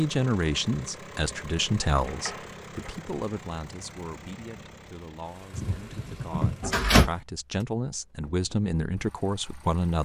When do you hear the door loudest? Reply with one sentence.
The loudest moment of the door is at 7 seconds.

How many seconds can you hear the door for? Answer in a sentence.
The door can be heard for 3 seconds in total.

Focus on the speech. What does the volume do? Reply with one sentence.
The volume of the speech goes down, then up.